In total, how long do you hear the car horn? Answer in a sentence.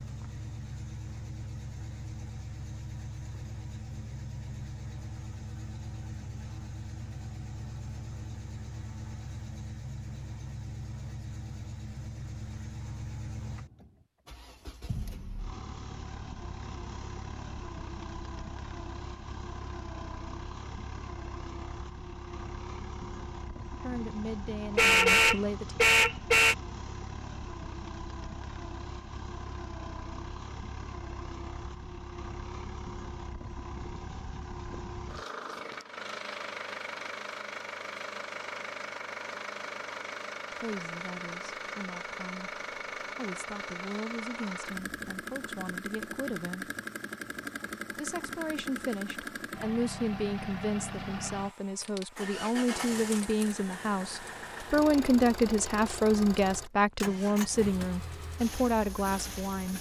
You can hear the car horn for 2 seconds altogether.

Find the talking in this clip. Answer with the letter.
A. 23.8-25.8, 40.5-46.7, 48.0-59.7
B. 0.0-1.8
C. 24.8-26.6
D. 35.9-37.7
A.